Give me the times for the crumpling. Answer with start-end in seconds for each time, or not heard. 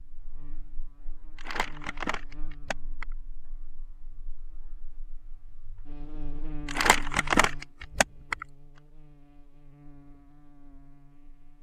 1.4-3.0, 6.7-8.4.